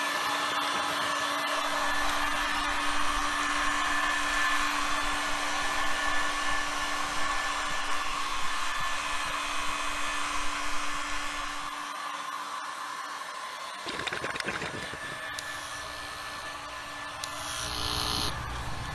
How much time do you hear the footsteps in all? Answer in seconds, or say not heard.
not heard.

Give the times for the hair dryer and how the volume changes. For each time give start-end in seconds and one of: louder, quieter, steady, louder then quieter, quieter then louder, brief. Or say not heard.
0.0-18.9 quieter.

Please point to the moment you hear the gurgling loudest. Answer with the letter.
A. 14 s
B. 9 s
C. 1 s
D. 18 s
A.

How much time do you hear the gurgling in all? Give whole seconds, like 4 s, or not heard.
3 s.